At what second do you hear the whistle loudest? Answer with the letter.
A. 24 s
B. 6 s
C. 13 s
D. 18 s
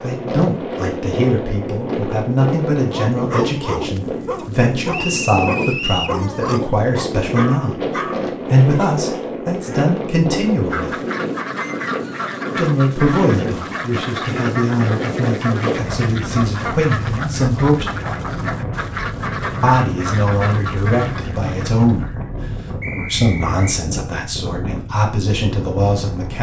B.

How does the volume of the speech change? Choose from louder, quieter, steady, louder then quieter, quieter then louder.
steady.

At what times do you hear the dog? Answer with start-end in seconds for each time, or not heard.
2.8-8.9.